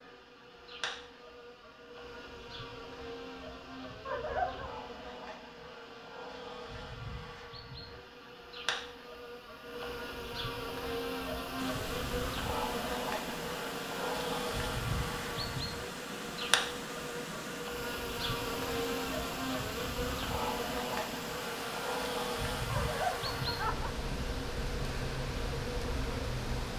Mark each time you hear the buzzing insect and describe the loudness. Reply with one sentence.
The buzzing insect can be heard from 0.0 to 26.7 s, getting louder.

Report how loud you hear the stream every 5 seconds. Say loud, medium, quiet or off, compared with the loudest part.
off, off, loud, loud, loud, loud.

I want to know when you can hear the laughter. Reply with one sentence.
The laughter can be heard from 4.0 to 4.8 s and from 22.7 to 23.9 s.